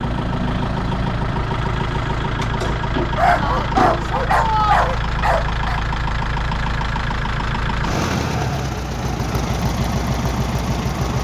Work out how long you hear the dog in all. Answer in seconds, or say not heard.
3 s.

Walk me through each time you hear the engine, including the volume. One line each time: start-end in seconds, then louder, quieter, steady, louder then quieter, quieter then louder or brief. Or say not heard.
0.0-11.2 steady.